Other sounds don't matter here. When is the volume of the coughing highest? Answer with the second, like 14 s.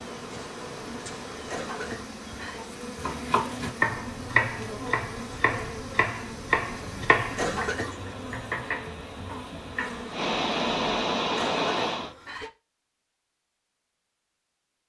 8 s.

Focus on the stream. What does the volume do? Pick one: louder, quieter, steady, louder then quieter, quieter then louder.
louder.